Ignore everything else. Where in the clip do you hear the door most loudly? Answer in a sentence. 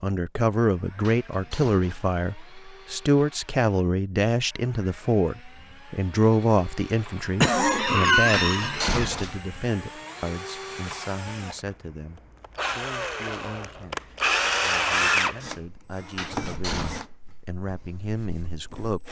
The volume of the door peaks at 9 seconds.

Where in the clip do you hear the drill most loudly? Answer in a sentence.
The volume of the drill peaks at 15 seconds.